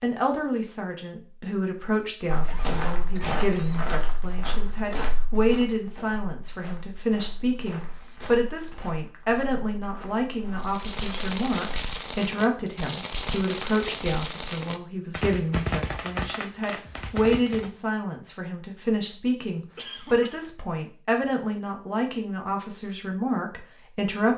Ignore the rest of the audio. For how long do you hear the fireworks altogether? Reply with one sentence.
You can hear the fireworks for 7 seconds altogether.